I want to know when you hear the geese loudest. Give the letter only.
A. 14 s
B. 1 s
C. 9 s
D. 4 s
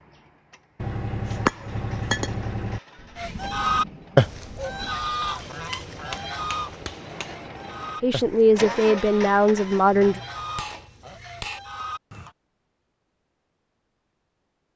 D.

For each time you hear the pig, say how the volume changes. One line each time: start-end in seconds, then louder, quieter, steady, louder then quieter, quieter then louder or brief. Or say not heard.
not heard.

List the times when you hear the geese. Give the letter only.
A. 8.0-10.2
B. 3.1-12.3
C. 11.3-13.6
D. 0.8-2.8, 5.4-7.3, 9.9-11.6
B.